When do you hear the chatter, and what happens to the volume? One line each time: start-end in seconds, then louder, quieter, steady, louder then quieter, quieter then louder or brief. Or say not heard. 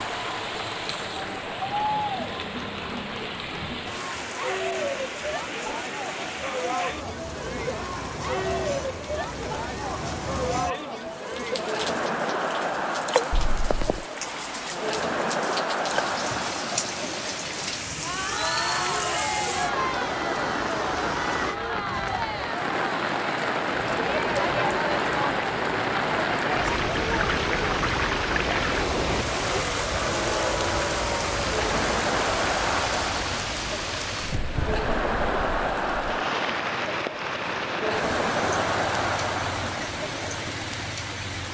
0.0-41.1 steady.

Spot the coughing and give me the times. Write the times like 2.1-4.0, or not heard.
13.3-14.1.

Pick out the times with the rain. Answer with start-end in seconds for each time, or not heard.
0.0-41.4.